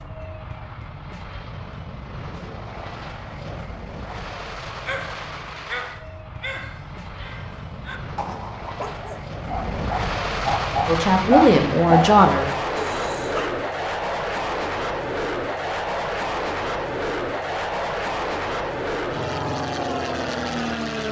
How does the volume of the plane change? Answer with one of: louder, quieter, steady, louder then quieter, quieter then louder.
louder.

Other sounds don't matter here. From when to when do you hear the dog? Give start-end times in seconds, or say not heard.
4.8-13.5.